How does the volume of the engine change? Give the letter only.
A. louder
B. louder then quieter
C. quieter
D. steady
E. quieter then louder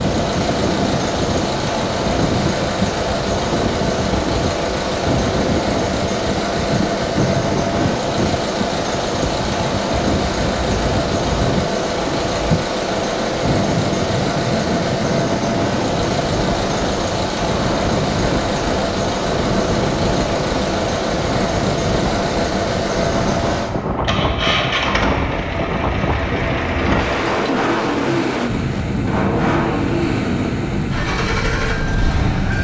D.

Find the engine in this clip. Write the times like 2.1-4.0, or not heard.
0.0-32.5.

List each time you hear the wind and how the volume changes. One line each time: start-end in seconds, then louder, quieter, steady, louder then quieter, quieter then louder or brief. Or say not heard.
0.0-32.5 steady.